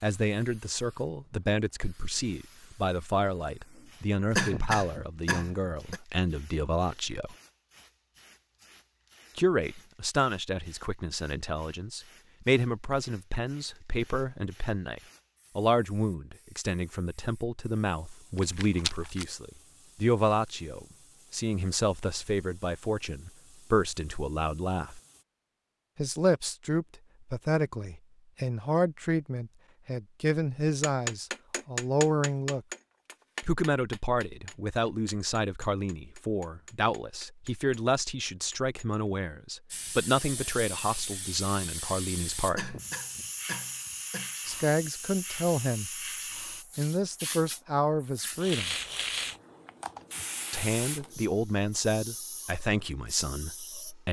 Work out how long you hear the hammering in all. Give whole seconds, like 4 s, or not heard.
8 s.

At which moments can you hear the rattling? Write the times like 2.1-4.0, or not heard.
18.4-19.2.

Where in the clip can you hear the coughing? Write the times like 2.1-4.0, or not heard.
4.3-6.0, 42.5-44.3.